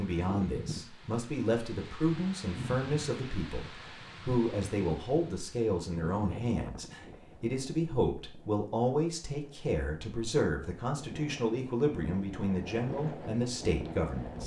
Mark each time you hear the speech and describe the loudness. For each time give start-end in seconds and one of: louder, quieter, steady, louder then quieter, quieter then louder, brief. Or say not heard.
0.0-14.4 steady.